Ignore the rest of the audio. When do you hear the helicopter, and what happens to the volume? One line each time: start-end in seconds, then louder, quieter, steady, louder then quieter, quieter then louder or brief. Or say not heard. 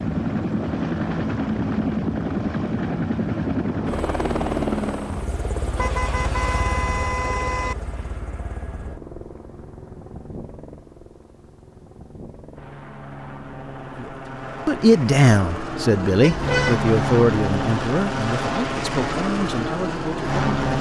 0.0-20.7 quieter then louder.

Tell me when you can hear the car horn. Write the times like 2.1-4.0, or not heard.
5.8-7.8, 16.2-16.9.